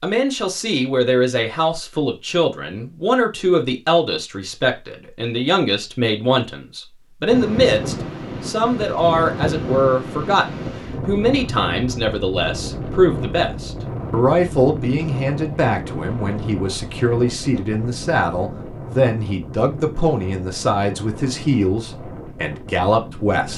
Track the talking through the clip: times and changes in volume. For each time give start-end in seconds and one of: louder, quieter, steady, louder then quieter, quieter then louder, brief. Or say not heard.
0.0-23.5 steady.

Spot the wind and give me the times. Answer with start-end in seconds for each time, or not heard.
7.2-23.5.